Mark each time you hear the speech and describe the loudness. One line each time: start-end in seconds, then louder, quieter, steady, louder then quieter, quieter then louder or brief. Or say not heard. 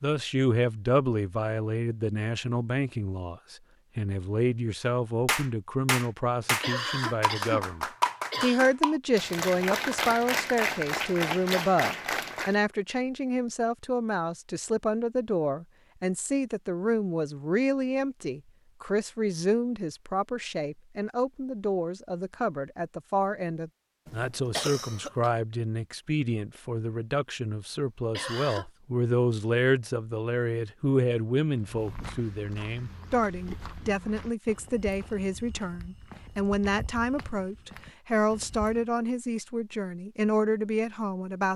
0.0-41.5 steady.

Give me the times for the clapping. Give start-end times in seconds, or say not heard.
5.2-12.6.